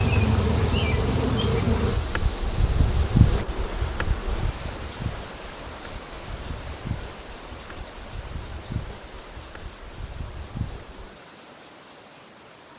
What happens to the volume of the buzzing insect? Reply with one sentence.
The volume of the buzzing insect goes down.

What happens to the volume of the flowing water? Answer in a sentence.
The loudness of the flowing water goes down.